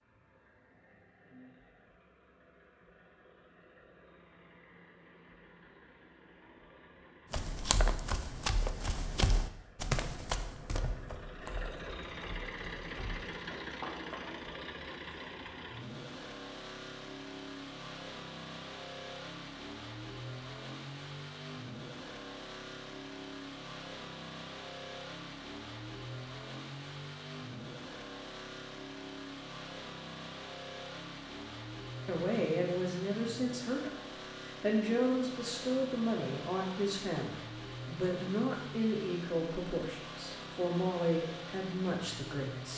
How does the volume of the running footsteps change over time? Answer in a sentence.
The loudness of the running footsteps goes down.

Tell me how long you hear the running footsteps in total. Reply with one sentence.
The running footsteps can be heard for 7 seconds in total.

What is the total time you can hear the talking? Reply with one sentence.
The talking can be heard for 11 seconds in total.